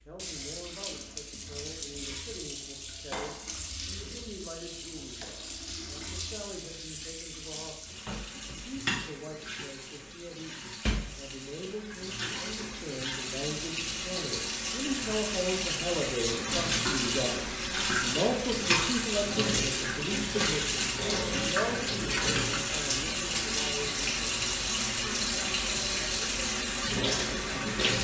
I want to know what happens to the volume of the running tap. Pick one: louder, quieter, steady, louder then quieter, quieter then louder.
louder.